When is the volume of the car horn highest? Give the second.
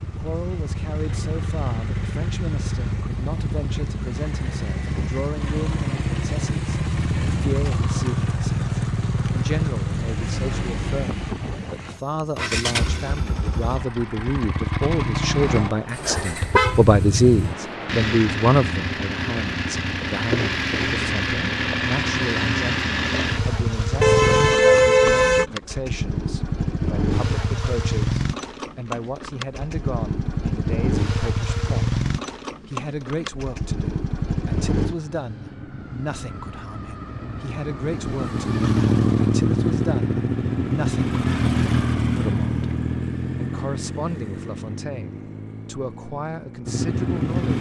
25 s.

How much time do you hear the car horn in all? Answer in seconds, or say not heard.
3 s.